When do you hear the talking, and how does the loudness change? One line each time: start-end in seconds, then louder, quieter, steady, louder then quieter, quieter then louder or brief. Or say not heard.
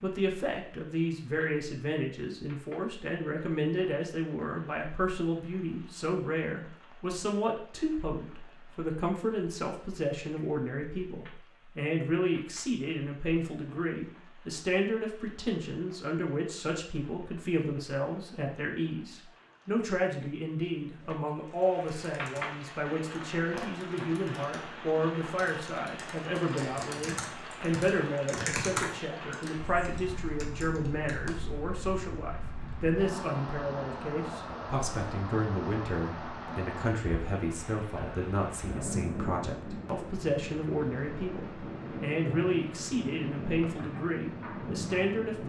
0.0-45.4 steady.